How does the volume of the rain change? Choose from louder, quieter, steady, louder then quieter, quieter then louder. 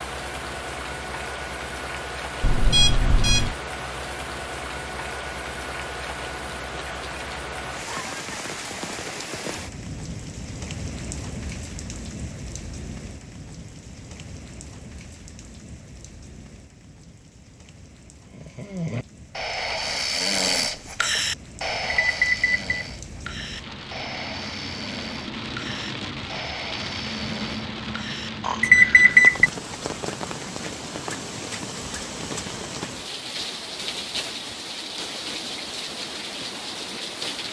quieter then louder.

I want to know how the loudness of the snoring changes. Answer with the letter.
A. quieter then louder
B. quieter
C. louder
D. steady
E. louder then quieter
B.